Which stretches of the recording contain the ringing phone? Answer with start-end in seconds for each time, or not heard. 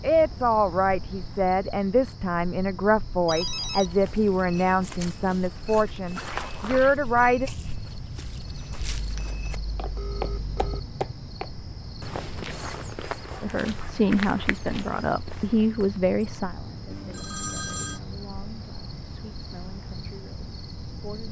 3.2-4.0, 8.9-10.8, 16.9-18.0.